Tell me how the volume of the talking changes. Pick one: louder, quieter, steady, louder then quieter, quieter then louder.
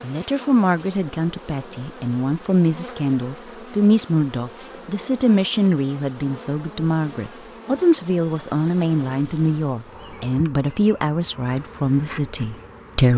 steady.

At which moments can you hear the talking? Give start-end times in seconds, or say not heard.
0.0-13.1.